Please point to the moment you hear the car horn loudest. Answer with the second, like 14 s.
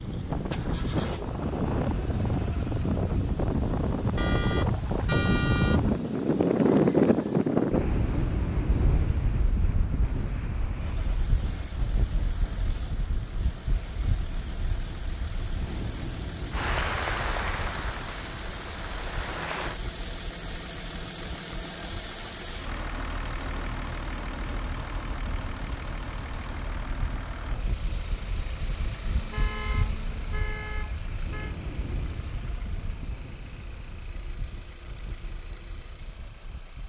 5 s.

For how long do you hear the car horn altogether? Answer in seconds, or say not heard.
4 s.